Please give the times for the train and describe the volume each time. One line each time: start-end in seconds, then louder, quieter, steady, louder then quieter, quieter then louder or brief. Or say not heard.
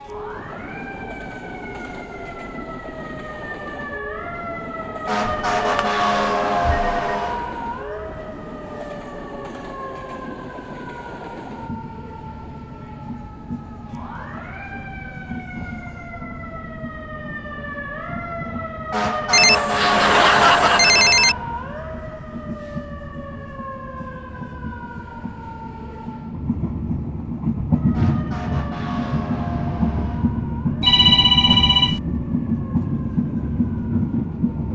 0.0-34.6 louder.